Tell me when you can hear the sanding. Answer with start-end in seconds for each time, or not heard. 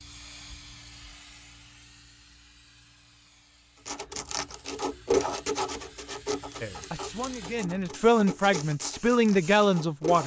3.9-10.2.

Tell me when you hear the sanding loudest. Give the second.
5 s.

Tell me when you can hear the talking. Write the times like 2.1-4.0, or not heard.
6.6-10.2.